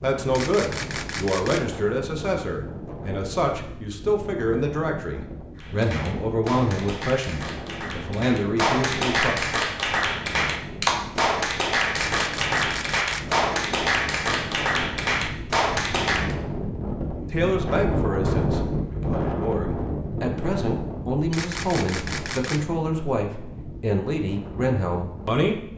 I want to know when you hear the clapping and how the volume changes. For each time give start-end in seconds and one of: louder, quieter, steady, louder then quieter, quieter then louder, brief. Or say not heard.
5.5-16.4 louder.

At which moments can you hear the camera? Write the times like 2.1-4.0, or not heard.
0.3-1.8, 11.9-13.3, 21.3-22.7.